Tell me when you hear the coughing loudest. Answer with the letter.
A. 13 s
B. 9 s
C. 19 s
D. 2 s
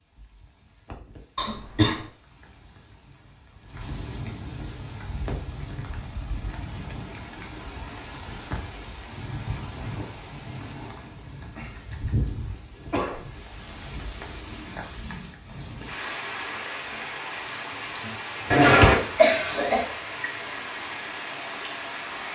C.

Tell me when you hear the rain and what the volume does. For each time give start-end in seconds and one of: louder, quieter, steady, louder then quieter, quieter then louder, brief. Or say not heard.
0.0-22.3 louder.